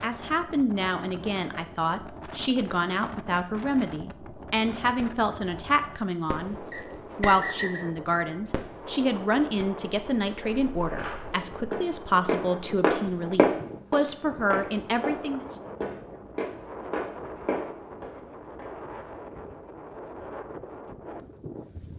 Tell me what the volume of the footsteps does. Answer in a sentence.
The loudness of the footsteps goes up, then down.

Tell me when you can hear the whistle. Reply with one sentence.
You can hear the whistle from 6.7 to 7.9 s.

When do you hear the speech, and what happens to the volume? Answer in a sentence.
The speech can be heard from 0.0 to 15.4 s, at a steady volume.